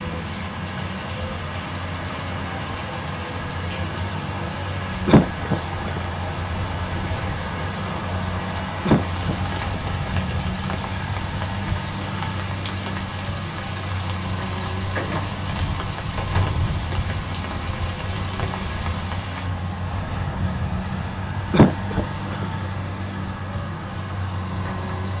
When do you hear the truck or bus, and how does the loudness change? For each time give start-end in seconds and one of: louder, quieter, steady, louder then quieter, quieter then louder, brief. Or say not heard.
0.0-25.1 steady.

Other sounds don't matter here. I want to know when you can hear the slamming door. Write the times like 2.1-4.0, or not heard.
16.1-16.6.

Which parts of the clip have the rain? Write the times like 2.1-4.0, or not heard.
0.0-19.5.